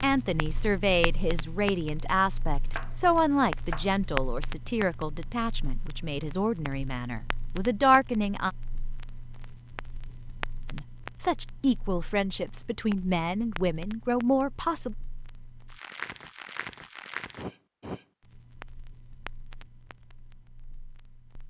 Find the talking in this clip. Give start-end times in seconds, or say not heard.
0.0-8.5, 10.7-14.9.